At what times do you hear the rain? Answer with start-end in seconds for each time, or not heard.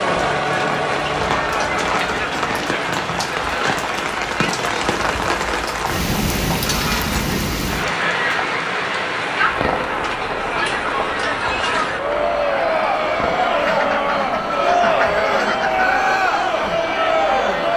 0.0-17.7.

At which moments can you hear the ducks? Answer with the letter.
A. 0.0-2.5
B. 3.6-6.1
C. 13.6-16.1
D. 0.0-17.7
C.